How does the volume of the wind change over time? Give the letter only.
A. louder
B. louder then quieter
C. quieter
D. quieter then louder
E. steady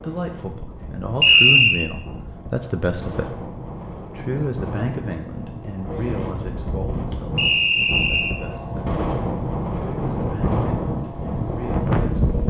A.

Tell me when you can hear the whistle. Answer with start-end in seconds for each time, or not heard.
1.2-1.8, 7.3-8.3.